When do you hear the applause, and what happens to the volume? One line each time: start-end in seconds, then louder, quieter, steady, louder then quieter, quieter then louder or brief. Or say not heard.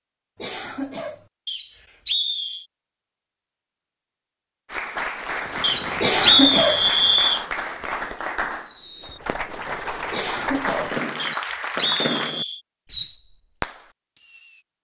4.7-12.3 steady.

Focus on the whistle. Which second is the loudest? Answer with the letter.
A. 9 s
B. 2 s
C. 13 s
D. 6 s
D.